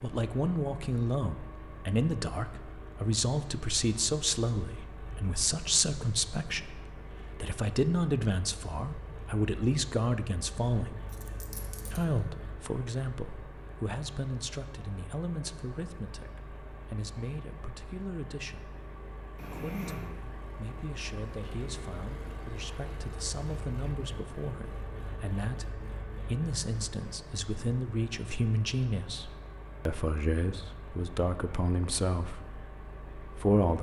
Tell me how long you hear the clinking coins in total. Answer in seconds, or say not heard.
2 s.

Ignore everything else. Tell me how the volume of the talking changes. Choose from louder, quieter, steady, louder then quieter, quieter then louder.
quieter then louder.